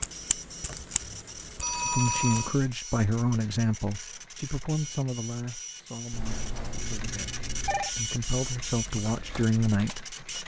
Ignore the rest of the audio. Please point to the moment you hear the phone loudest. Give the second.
2 s.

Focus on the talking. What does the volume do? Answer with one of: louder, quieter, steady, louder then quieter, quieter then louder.
quieter then louder.